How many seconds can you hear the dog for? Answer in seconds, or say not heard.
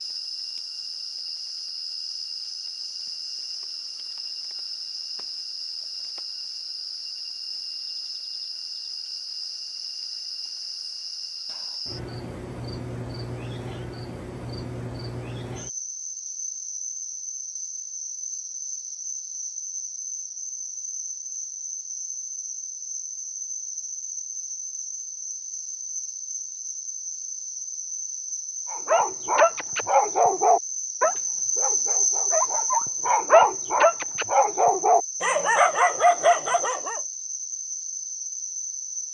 8 s.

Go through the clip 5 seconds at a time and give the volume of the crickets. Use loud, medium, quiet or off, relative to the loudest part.
medium, medium, medium, medium, medium, medium, loud, medium.